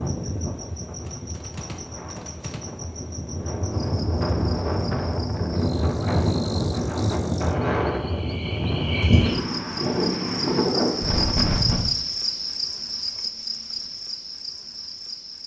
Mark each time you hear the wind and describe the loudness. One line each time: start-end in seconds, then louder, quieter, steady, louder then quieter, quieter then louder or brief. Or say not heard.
0.0-11.9 louder.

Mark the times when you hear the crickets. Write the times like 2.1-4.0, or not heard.
0.0-15.4.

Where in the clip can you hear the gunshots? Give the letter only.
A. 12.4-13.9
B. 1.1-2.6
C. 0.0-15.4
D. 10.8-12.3
B.